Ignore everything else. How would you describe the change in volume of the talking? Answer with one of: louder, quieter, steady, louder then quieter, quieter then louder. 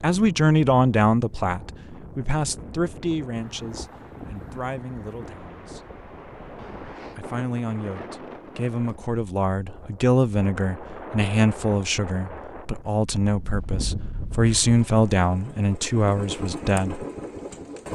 quieter then louder.